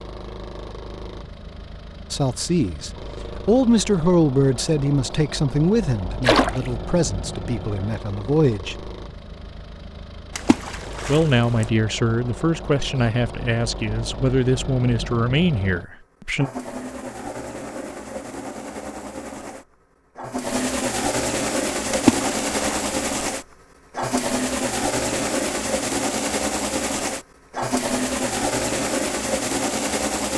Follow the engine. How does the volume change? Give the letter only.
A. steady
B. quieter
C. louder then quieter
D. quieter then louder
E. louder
E.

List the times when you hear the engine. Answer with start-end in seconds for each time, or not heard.
0.0-30.3.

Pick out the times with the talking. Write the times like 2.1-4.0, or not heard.
2.1-8.9, 11.1-16.5.